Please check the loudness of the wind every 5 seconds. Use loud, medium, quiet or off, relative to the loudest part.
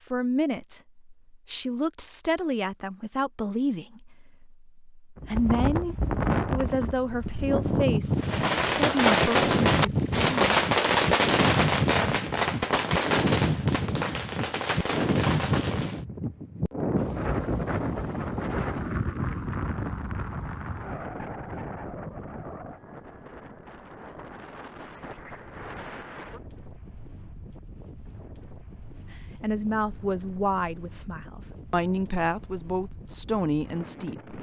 off, loud, loud, loud, medium, quiet, quiet.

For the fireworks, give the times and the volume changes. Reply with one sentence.
You can hear the fireworks from 8.2 to 16.0 s, getting quieter.